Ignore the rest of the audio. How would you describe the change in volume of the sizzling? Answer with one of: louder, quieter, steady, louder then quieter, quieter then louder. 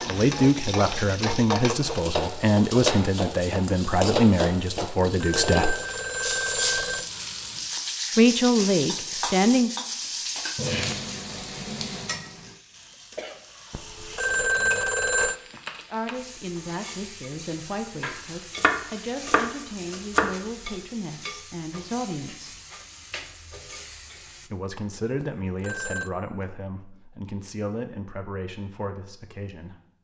quieter.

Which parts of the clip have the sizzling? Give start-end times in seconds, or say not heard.
0.0-24.5.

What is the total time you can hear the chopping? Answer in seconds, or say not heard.
2 s.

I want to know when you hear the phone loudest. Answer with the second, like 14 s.
15 s.